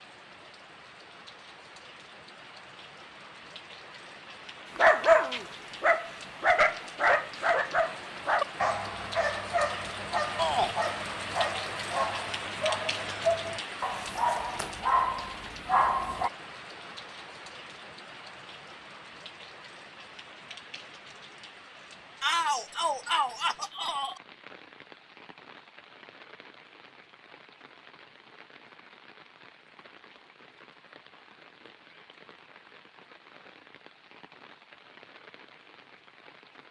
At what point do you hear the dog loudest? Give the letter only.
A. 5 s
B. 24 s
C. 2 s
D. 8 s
A.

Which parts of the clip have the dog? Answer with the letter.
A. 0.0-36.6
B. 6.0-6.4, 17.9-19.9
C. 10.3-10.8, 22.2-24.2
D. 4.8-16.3
D.